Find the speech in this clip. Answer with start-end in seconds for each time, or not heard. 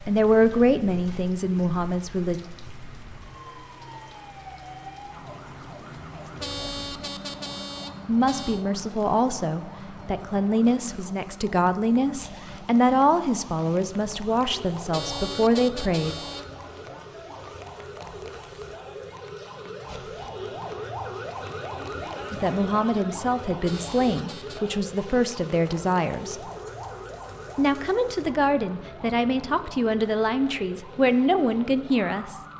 0.1-2.4, 8.1-16.1, 22.3-26.4, 27.6-32.4.